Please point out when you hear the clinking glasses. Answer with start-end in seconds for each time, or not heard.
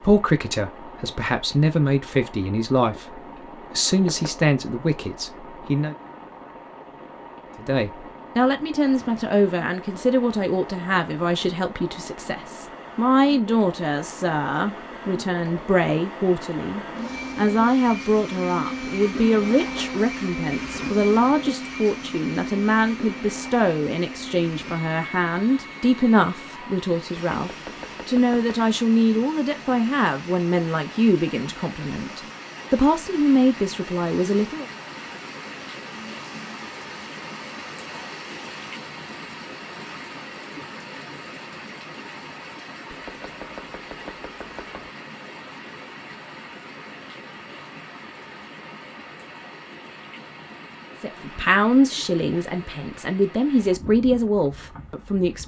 not heard.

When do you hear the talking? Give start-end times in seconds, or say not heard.
0.0-6.0, 7.5-34.7, 51.0-55.4.